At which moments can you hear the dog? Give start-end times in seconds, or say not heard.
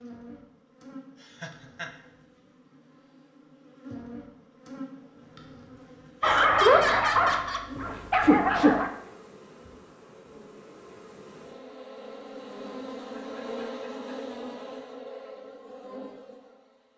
6.2-8.9.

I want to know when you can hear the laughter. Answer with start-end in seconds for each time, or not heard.
1.2-1.9, 6.2-7.7, 13.2-14.2.